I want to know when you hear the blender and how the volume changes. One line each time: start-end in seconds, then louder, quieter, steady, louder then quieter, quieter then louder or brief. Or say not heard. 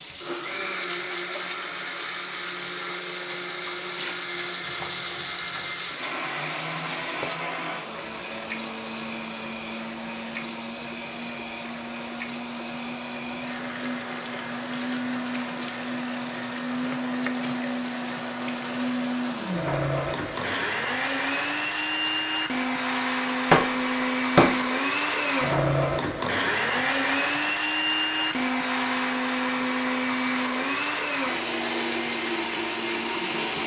0.0-33.6 louder.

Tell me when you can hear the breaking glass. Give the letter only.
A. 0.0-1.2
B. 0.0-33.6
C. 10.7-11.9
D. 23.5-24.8
D.